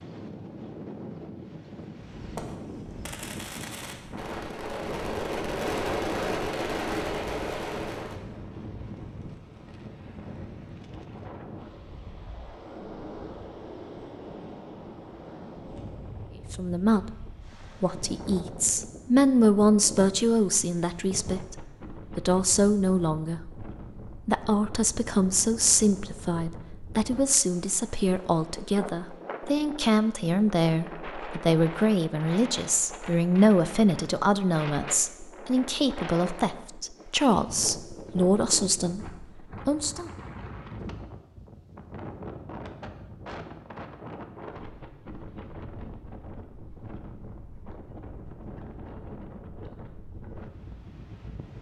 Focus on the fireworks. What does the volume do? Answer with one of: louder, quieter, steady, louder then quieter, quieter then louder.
louder.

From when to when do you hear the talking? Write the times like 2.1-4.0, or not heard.
16.5-23.6, 24.2-40.1.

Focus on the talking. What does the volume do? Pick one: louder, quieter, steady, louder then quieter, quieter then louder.
steady.